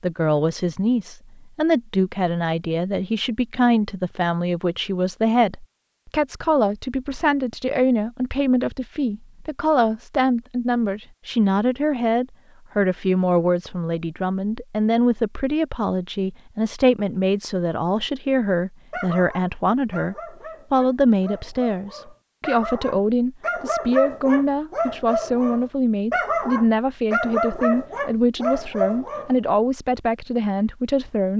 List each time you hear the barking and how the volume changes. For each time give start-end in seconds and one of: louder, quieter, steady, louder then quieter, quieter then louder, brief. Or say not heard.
18.9-29.4 louder.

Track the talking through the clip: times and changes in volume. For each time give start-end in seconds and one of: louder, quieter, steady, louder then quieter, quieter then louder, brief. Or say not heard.
0.0-31.3 steady.